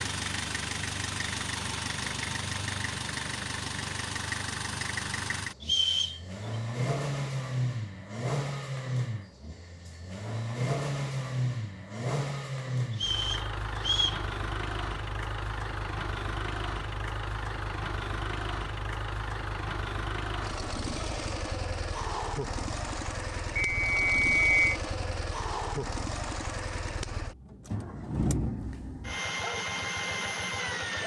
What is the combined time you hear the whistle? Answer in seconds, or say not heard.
3 s.